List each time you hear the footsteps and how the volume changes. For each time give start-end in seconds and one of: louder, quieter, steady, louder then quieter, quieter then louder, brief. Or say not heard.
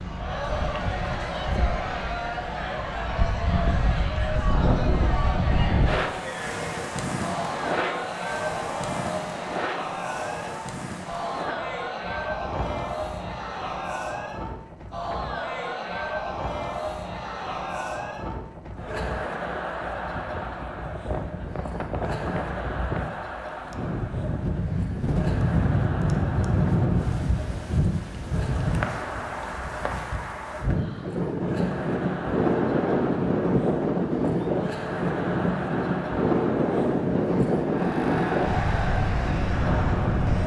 not heard.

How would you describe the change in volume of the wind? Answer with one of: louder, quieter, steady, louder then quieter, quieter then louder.
quieter then louder.